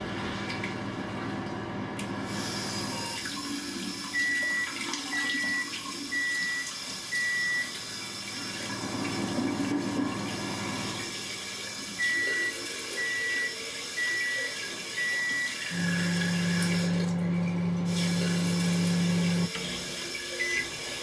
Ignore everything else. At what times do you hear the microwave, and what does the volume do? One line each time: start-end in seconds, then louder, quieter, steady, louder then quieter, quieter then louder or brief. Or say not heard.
0.0-20.9 louder.